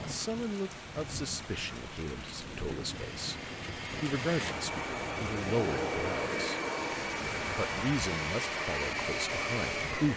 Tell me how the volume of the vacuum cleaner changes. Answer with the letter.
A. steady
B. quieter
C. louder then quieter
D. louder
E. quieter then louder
D.